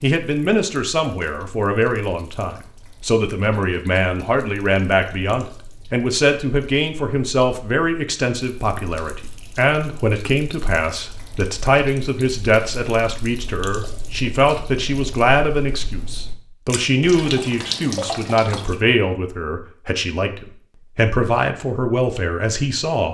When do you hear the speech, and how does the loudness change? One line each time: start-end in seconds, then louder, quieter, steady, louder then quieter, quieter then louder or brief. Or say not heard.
0.0-23.0 steady.